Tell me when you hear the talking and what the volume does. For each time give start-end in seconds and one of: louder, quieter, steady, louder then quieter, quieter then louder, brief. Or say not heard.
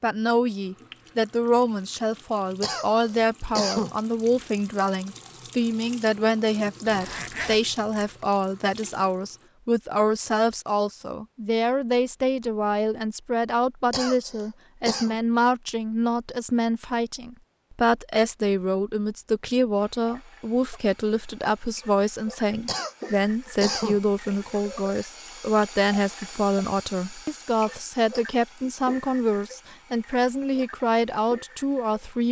0.0-32.2 steady.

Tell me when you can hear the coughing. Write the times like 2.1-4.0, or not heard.
2.6-4.0, 13.9-15.2, 22.6-24.0.